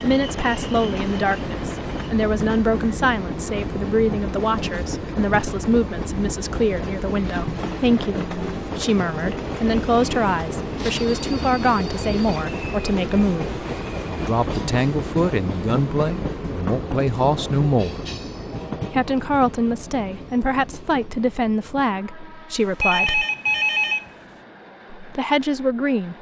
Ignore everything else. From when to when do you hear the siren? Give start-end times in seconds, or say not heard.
not heard.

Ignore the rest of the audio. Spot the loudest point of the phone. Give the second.
24 s.